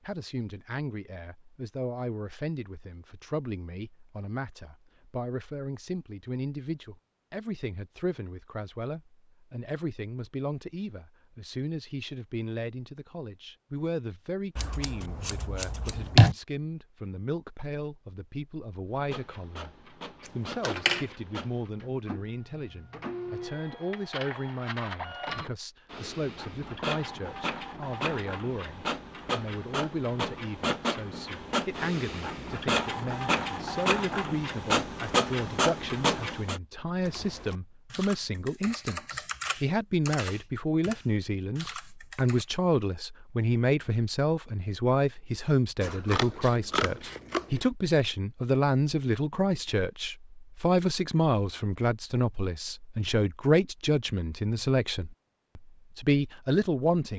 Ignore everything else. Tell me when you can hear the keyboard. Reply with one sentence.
You can hear the keyboard from 37.0 to 42.5 s.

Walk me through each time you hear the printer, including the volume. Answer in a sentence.
The printer can be heard from 18.9 to 36.6 s, getting louder.